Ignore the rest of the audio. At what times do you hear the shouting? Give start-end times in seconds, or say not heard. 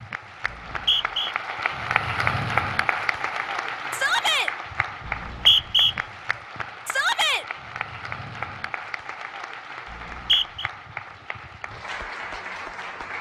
3.9-4.5, 6.8-7.5.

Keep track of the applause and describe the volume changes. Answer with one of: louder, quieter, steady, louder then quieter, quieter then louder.
quieter.